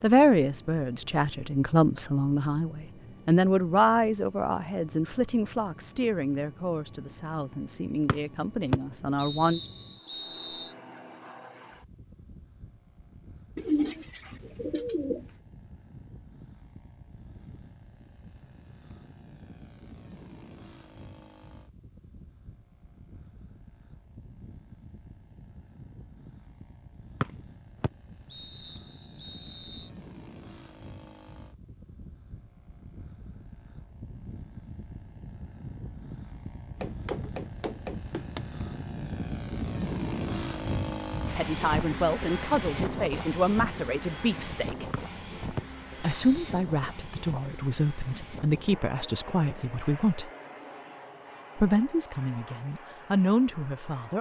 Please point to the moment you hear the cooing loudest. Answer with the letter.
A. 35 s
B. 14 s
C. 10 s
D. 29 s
B.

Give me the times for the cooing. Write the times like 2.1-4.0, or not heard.
13.6-15.2.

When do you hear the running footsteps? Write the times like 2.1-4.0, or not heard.
36.8-38.5.